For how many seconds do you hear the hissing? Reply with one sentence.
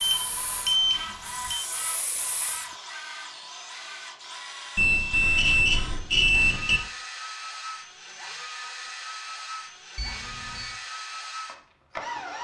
The hissing can be heard for 3 seconds in total.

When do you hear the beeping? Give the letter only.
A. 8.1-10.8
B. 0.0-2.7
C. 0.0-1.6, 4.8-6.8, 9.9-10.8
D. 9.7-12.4
C.